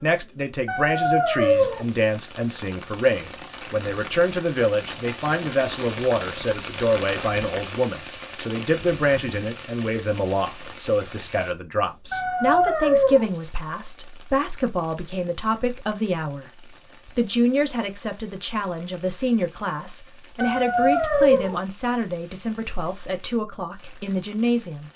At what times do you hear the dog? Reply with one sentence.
The dog can be heard from 0.7 to 1.9 s, from 12.1 to 13.3 s and from 20.4 to 21.6 s.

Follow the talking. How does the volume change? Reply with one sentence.
The loudness of the talking stays about the same.